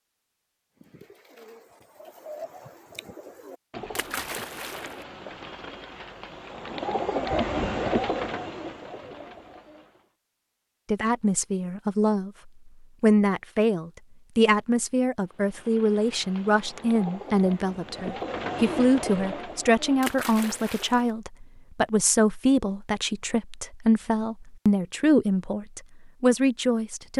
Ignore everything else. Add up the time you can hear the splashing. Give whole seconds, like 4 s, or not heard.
2 s.